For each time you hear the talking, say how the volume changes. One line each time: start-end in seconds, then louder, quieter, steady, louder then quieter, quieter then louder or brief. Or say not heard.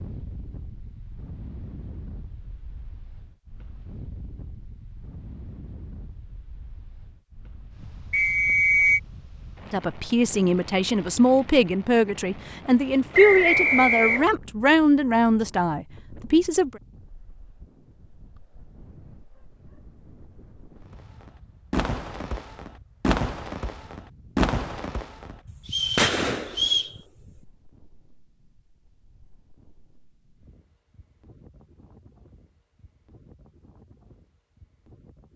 9.7-16.8 steady.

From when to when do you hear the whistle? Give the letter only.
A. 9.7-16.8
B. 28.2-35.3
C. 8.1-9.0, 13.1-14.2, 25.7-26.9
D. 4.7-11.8
C.